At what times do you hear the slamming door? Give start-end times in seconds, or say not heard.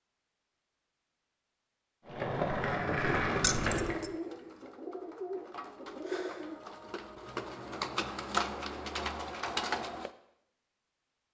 not heard.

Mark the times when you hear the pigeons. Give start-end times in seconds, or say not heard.
3.0-10.1.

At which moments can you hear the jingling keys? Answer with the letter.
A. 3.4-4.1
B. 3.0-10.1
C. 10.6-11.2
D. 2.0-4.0
A.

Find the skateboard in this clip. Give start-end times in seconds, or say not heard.
2.0-4.0.